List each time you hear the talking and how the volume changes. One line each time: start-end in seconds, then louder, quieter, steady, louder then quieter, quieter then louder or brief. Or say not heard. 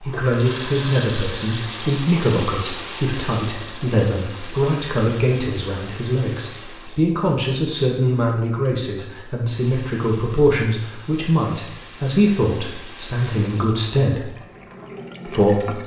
0.0-14.3 steady
15.2-15.8 brief.